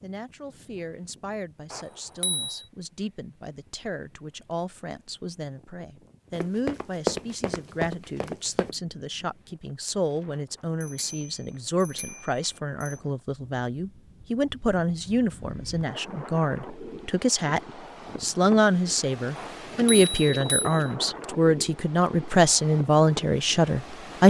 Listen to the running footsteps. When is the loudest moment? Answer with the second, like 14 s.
7 s.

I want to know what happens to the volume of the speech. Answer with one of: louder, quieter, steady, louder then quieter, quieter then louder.
louder.